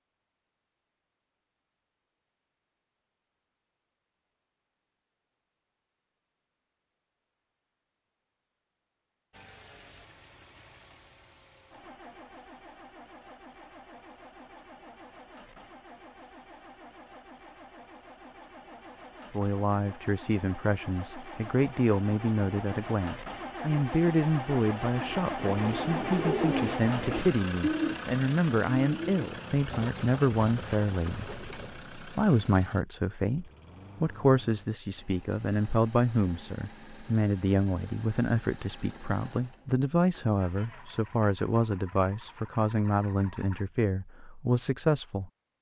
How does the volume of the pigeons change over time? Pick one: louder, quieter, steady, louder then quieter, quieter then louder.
louder then quieter.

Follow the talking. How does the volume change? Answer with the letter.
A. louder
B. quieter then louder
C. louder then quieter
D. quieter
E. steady
E.